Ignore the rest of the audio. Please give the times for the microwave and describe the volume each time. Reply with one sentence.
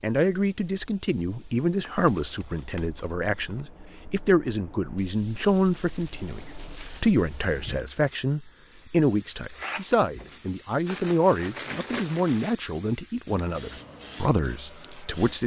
You can't hear the microwave here.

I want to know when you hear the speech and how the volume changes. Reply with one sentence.
The speech can be heard from 0.0 to 15.4 s, at a steady volume.